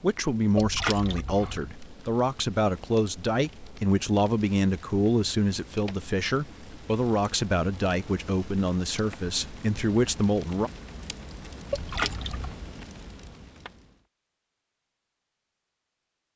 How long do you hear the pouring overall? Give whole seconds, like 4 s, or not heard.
2 s.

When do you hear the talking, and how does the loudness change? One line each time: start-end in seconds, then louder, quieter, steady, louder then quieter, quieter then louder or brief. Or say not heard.
0.0-10.7 steady.